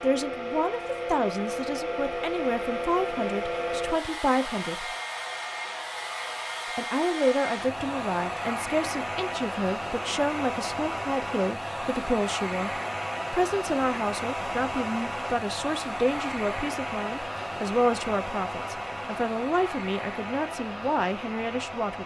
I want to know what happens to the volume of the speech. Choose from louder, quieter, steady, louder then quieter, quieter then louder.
steady.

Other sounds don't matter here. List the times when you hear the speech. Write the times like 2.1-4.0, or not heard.
0.0-5.0, 6.8-22.0.